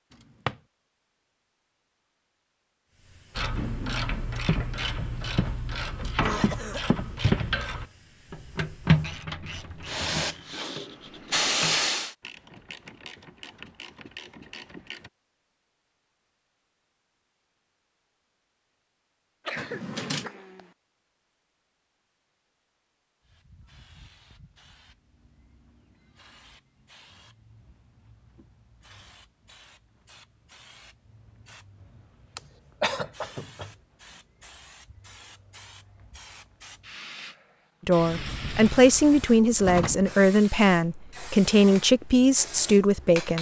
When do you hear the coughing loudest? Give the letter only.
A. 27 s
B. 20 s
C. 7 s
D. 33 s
D.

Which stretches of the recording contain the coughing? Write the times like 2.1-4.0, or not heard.
6.2-6.8, 19.4-20.7, 32.4-33.7.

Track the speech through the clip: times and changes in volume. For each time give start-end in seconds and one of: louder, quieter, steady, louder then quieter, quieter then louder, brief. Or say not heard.
37.9-43.3 steady.